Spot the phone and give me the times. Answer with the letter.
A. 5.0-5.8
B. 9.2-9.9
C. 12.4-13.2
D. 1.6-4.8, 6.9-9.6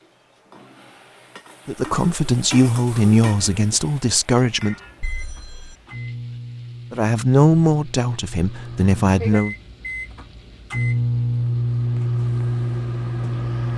A.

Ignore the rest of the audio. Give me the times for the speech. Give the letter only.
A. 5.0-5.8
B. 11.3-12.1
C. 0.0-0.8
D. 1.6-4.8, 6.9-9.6
D.